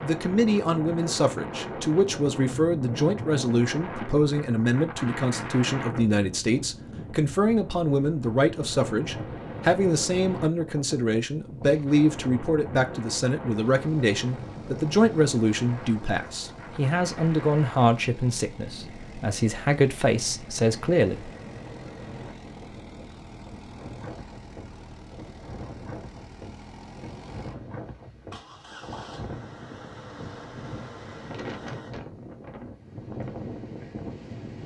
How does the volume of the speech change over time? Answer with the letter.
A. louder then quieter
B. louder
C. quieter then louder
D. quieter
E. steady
E.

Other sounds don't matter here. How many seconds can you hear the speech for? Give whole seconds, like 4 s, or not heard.
21 s.